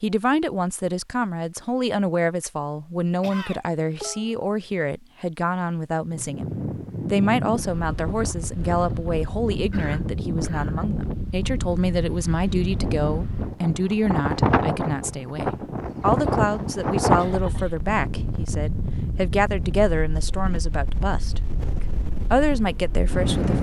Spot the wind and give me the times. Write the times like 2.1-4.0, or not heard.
6.0-23.5.